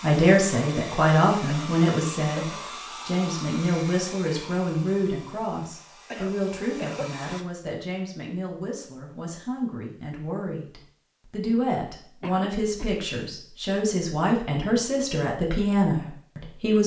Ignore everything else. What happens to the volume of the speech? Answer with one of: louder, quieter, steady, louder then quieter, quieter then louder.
quieter then louder.